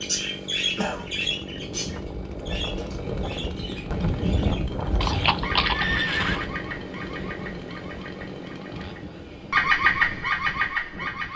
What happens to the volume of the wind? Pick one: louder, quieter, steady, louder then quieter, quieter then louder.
louder then quieter.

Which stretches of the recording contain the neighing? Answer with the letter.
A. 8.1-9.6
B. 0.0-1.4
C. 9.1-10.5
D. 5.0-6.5
D.